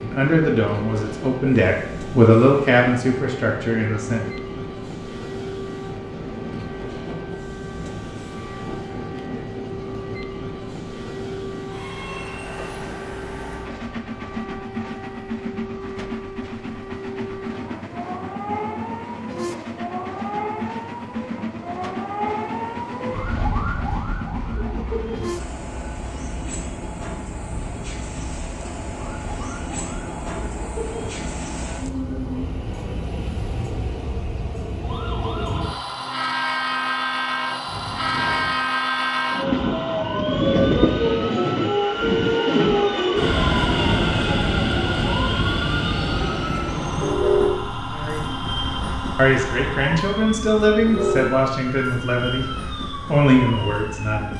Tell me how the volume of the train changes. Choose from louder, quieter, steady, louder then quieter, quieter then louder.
louder.